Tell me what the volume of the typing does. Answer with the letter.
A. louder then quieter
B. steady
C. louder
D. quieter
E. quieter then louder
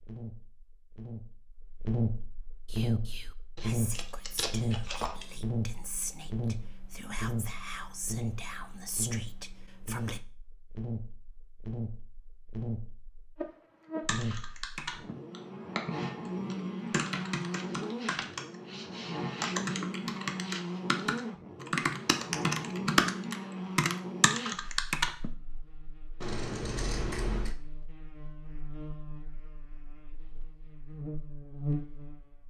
C.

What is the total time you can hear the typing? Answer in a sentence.
You can hear the typing for 11 seconds altogether.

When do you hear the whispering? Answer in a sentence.
The whispering can be heard from 2.6 to 10.2 s.